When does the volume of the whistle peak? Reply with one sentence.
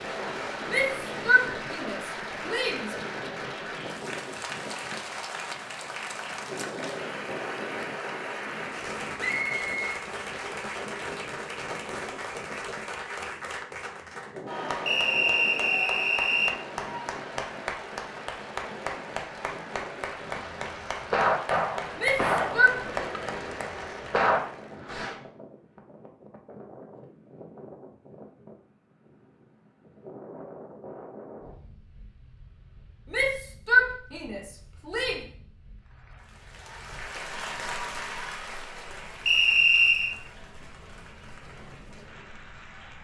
The loudest moment of the whistle is at 40 seconds.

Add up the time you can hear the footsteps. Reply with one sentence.
You can't hear the footsteps here.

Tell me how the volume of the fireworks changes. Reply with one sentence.
The volume of the fireworks goes down, then up.